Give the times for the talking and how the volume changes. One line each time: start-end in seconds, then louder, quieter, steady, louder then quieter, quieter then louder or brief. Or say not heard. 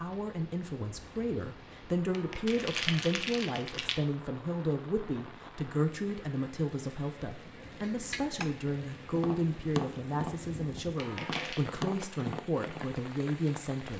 0.0-13.9 steady.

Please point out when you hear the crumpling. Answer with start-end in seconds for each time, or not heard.
2.1-4.0, 10.9-11.7.